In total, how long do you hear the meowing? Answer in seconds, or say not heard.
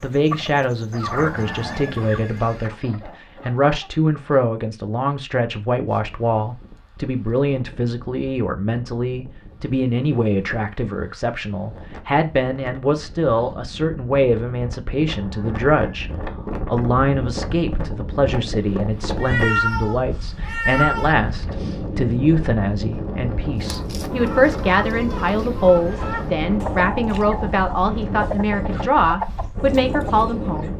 2 s.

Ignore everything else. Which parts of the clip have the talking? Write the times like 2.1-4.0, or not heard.
0.0-30.7.